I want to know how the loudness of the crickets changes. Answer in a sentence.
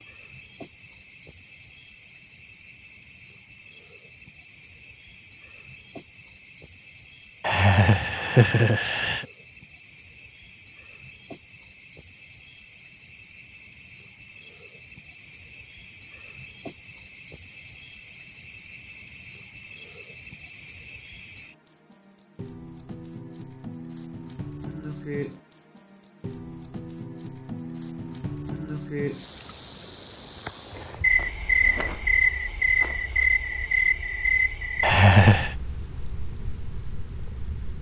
The loudness of the crickets goes up.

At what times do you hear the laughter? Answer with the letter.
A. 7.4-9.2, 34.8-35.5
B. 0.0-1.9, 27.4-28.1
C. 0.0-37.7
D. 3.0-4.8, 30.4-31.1
A.